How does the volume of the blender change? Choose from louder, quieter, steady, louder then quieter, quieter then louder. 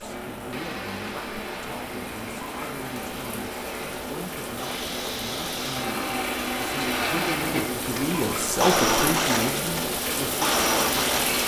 louder.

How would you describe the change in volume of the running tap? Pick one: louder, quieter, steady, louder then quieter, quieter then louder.
louder.